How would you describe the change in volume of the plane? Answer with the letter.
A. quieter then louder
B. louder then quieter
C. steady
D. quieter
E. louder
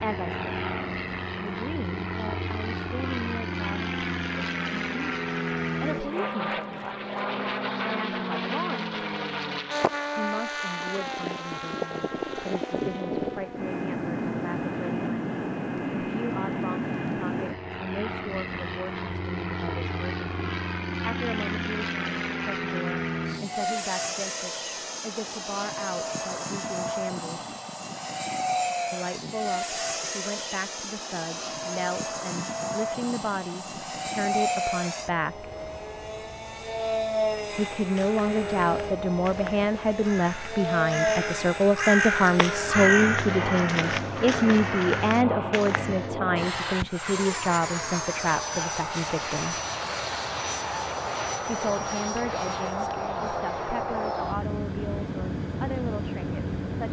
C.